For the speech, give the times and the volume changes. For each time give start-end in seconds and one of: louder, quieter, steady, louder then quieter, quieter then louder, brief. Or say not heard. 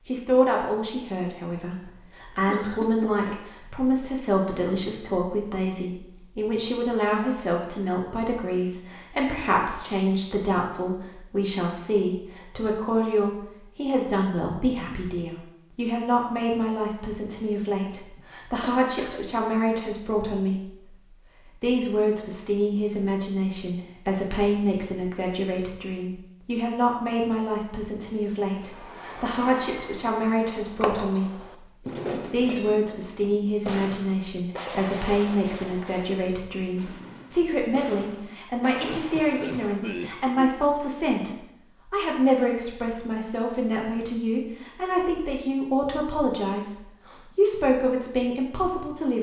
0.1-49.1 steady.